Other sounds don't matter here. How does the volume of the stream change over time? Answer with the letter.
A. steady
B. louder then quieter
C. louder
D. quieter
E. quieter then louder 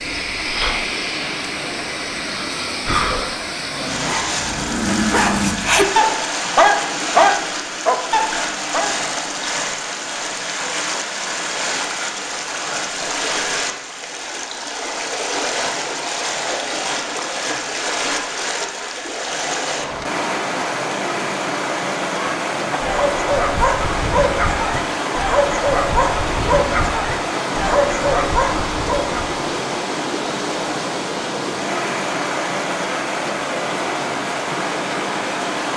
A.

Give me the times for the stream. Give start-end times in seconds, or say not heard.
0.0-35.7.